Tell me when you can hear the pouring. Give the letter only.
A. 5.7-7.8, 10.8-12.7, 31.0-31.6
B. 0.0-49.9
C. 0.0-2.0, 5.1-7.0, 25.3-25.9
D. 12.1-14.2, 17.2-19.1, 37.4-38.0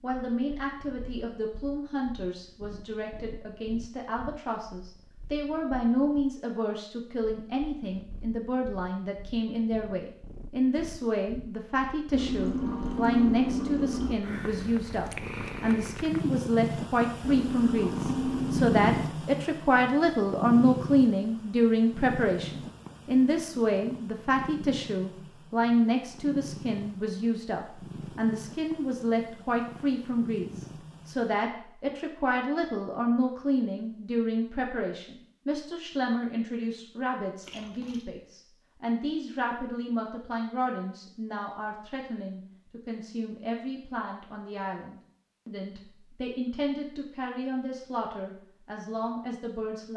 D.